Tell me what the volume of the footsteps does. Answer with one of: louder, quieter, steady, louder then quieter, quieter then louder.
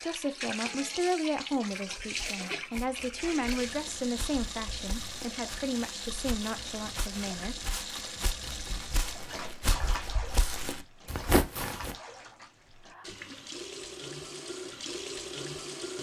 louder.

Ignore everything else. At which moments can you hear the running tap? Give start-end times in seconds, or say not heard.
0.0-15.9.